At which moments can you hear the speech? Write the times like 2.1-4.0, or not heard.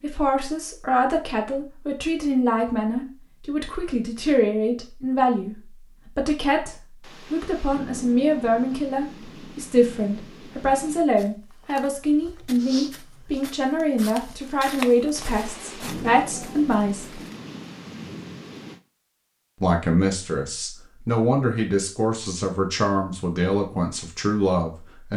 0.0-17.2, 19.6-25.1.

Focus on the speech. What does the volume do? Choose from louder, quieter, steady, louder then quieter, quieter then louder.
steady.